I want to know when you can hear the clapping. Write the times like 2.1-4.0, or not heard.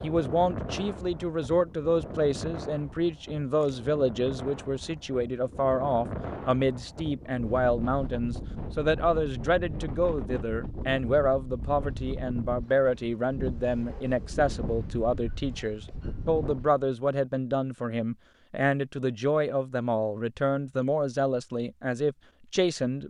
not heard.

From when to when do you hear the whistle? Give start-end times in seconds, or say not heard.
not heard.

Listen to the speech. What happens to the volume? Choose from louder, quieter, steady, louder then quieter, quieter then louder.
steady.